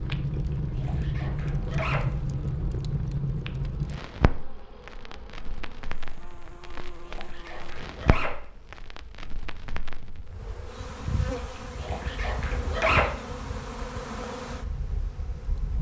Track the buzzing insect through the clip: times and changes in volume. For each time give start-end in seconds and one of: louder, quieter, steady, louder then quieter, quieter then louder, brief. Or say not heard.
0.0-15.7 louder.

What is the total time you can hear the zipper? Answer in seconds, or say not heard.
4 s.